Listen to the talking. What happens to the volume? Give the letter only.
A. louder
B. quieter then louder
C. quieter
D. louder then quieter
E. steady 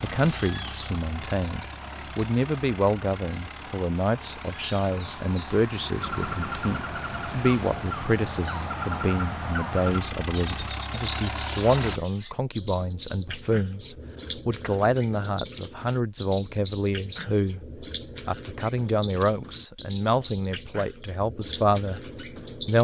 E.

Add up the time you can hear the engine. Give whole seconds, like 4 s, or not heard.
12 s.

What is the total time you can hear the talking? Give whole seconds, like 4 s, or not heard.
23 s.